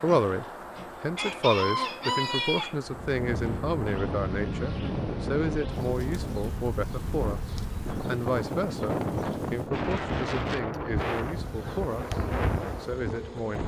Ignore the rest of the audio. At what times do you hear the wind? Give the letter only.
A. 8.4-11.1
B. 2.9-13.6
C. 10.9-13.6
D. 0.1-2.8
B.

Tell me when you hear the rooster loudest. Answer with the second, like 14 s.
2 s.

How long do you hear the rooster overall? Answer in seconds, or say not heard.
3 s.